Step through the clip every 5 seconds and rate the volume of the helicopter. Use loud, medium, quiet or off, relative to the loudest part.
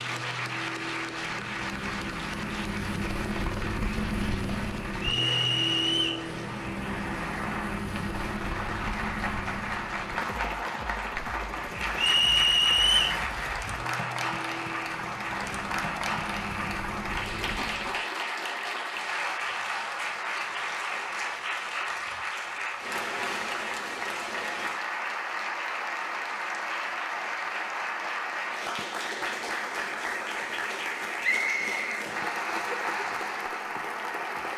loud, loud, medium, medium, off, off, off.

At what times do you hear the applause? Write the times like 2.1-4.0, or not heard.
0.0-34.5.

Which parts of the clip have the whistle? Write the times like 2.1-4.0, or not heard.
5.0-6.2, 11.9-13.2, 31.2-31.9.